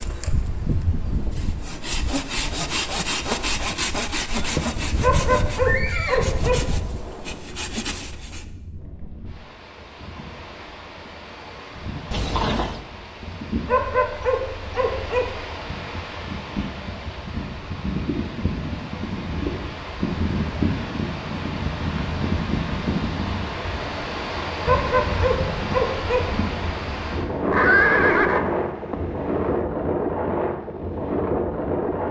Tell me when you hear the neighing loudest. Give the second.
28 s.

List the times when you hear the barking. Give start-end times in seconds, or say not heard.
5.0-6.8, 13.7-15.4, 24.6-26.4.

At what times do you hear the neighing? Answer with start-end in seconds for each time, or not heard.
4.3-6.3, 12.1-12.8, 27.2-29.6.